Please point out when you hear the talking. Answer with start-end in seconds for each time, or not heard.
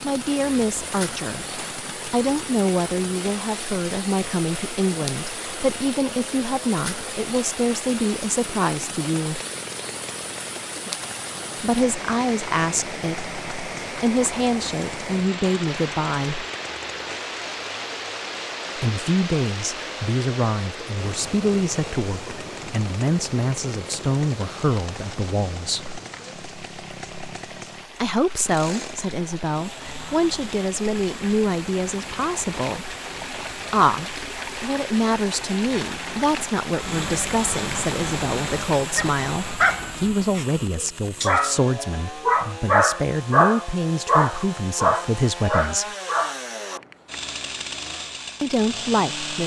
0.0-9.4, 11.6-16.4, 18.8-25.9, 28.0-33.0, 33.7-45.9, 48.4-49.4.